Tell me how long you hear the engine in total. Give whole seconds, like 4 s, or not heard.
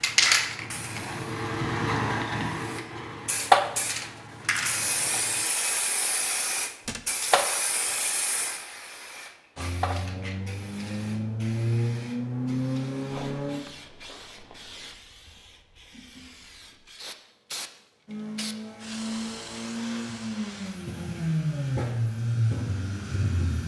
15 s.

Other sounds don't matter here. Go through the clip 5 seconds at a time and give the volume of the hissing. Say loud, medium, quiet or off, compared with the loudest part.
loud, medium, quiet, quiet, quiet.